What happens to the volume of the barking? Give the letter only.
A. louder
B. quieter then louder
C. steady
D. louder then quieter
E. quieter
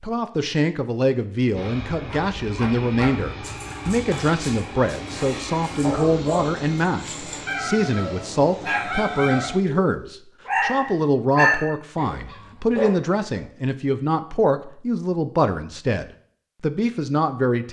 A.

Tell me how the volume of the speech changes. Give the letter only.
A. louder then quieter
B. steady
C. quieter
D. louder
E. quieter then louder
B.